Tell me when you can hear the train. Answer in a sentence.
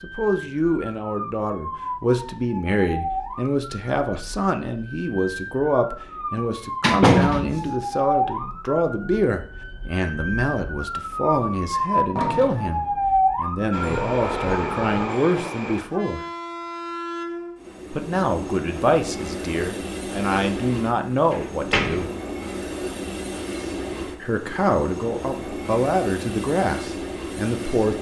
The train can be heard from 13.7 to 27.9 s.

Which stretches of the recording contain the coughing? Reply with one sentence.
You can't hear the coughing here.